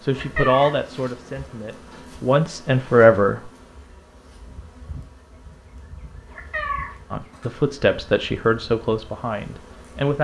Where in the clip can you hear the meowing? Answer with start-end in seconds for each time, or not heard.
0.1-0.8, 6.2-7.0.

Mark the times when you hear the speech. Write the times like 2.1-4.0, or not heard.
0.1-3.5, 7.1-10.1.